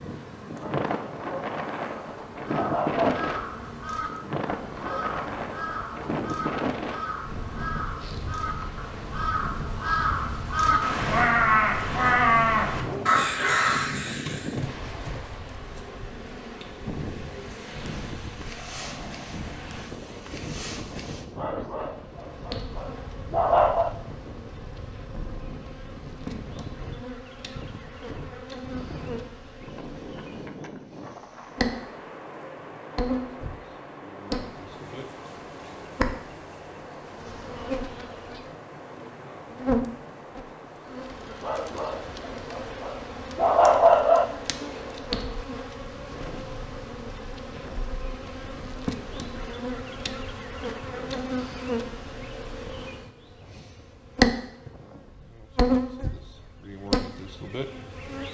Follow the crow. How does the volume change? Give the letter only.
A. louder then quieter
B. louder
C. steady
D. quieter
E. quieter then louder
B.